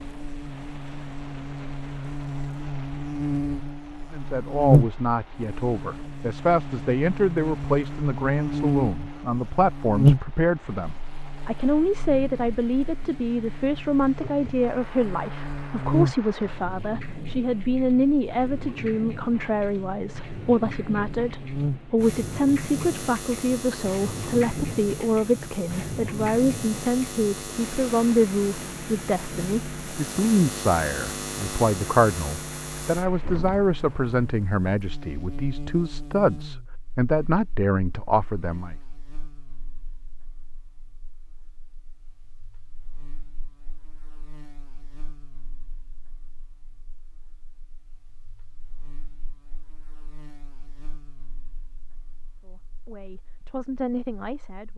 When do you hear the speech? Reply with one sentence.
You can hear the speech from 4.1 to 38.8 s and from 52.4 to 54.7 s.